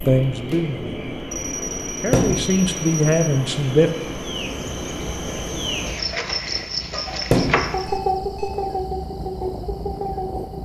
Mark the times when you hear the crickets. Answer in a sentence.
The crickets can be heard from 0.0 to 10.6 s.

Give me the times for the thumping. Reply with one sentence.
The thumping can be heard from 2.1 to 2.5 s and from 7.3 to 7.8 s.